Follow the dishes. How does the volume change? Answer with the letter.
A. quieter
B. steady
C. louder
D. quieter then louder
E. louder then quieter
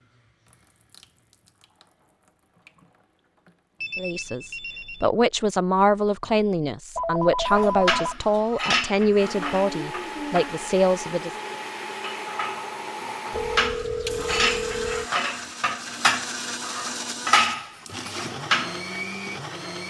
D.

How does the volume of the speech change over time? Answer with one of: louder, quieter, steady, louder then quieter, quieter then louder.
steady.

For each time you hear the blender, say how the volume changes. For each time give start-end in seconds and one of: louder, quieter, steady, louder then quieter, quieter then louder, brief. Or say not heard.
9.2-19.8 steady.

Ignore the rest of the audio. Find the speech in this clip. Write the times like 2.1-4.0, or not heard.
4.0-11.3.